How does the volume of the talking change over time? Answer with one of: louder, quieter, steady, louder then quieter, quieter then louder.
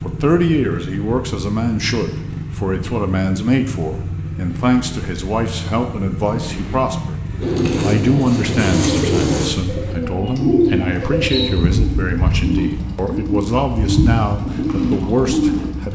steady.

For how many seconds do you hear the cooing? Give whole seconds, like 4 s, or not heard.
8 s.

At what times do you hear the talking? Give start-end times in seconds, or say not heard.
0.0-7.2, 7.8-15.8.